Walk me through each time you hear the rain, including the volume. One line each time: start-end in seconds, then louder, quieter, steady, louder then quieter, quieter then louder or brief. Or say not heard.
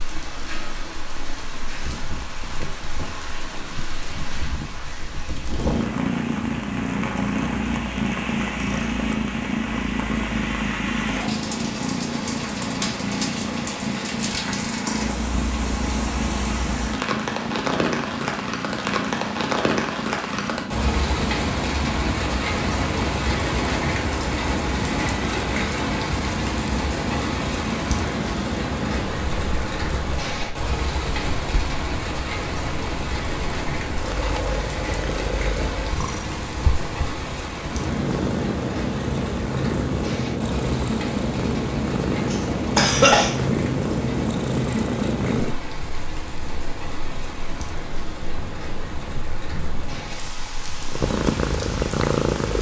0.0-52.5 louder then quieter.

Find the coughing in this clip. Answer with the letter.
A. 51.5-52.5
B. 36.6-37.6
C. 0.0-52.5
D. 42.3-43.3
D.